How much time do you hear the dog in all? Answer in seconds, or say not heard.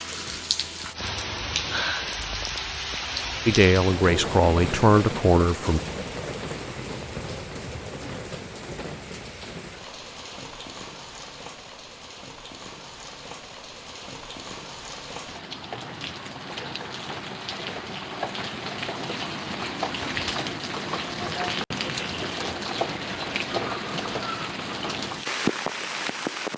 not heard.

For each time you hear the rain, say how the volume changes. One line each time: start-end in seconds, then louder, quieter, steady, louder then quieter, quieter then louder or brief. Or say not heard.
0.0-26.5 quieter then louder.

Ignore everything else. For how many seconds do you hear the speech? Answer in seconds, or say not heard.
2 s.